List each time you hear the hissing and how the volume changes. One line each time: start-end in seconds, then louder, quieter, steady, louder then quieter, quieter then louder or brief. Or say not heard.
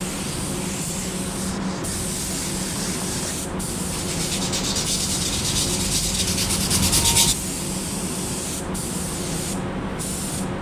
0.0-10.5 steady.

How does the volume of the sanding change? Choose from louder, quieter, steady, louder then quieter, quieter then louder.
louder.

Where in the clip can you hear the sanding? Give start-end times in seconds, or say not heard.
1.2-7.3.